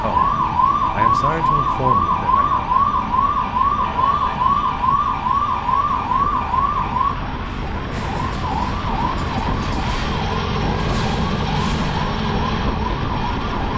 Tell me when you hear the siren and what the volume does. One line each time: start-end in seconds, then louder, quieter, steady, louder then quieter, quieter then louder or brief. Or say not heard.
0.0-13.7 quieter.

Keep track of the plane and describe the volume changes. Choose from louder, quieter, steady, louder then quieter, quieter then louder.
louder.